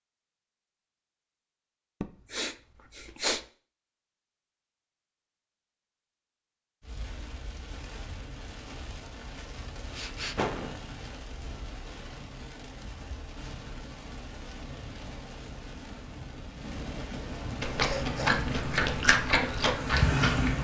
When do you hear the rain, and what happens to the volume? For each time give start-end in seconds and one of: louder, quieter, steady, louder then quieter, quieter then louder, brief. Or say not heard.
6.8-20.5 louder.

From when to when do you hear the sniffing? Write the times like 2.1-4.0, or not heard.
2.0-3.4, 9.9-10.8, 17.9-18.4.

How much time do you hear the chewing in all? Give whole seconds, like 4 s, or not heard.
3 s.